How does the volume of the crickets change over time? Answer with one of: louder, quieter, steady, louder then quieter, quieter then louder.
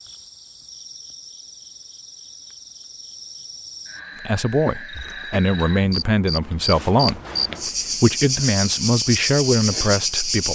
louder.